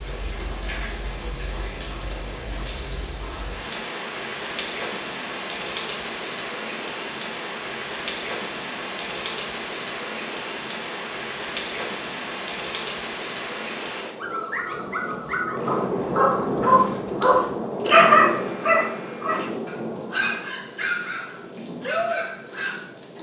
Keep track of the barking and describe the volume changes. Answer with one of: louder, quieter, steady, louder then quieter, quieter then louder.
louder then quieter.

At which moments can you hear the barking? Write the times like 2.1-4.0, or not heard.
14.2-22.9.